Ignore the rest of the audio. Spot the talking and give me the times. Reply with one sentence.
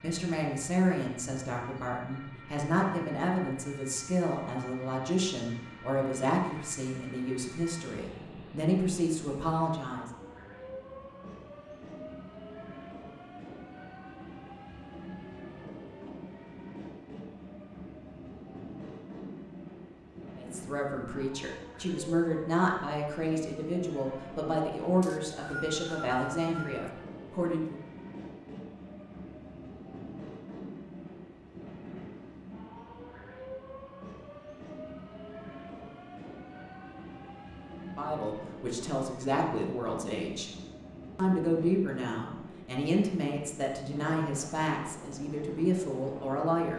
The talking can be heard from 0.0 to 10.1 s, from 20.4 to 27.8 s, from 37.9 to 40.5 s and from 41.1 to 46.7 s.